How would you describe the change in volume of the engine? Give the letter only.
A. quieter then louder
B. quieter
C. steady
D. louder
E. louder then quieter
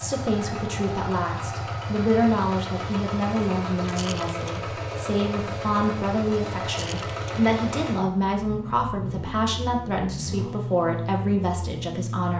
C.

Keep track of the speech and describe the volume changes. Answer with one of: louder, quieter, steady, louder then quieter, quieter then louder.
steady.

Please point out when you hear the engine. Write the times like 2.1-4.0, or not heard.
0.0-12.3.